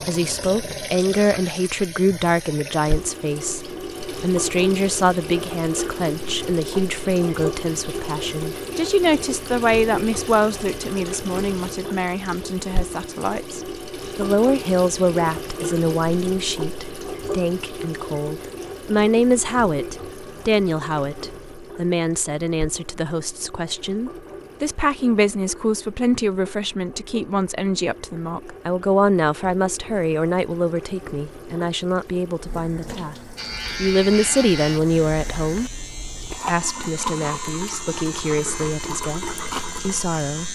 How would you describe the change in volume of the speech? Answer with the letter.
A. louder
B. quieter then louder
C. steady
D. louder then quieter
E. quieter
C.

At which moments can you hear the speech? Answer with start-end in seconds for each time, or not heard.
0.1-40.5.